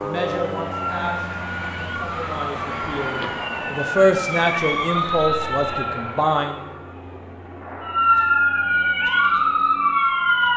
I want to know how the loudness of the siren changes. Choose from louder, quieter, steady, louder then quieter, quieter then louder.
louder.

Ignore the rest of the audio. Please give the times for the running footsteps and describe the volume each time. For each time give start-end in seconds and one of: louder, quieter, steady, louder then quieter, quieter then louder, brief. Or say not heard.
not heard.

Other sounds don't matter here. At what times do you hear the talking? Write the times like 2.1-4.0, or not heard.
0.0-6.7.